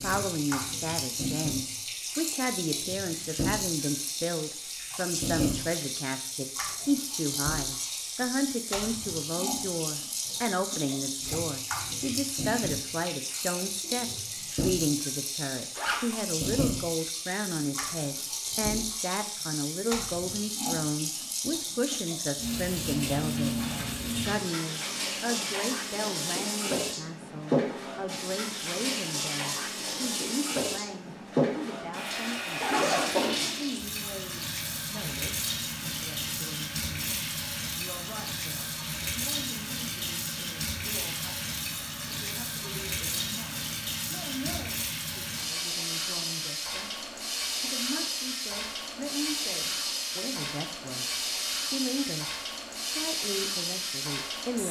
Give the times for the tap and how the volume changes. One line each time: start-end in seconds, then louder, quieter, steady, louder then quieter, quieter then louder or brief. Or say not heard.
0.0-54.6 steady.